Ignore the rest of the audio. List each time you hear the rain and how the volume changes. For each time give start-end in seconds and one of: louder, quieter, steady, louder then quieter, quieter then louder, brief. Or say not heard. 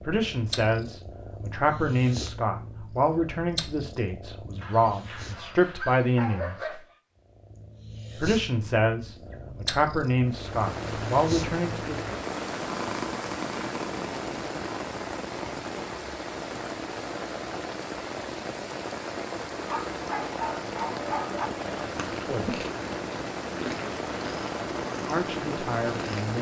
10.2-26.3 steady.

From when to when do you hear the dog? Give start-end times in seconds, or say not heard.
4.6-7.0, 19.6-21.5.